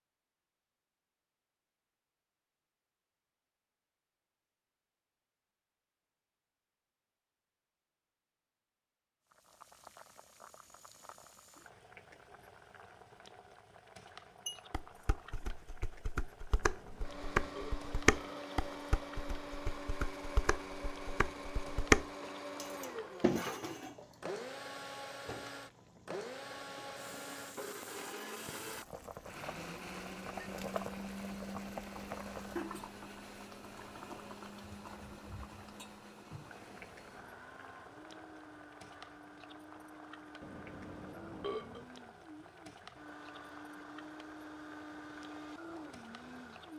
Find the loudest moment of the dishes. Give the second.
22 s.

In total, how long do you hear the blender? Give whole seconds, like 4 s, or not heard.
30 s.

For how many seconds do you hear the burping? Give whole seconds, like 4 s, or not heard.
3 s.